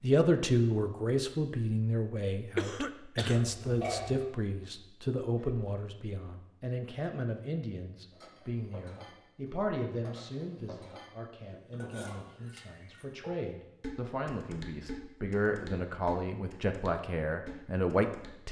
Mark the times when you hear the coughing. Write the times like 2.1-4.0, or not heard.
2.5-3.5.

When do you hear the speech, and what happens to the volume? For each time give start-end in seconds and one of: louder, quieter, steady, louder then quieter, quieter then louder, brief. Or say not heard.
0.0-18.4 quieter then louder.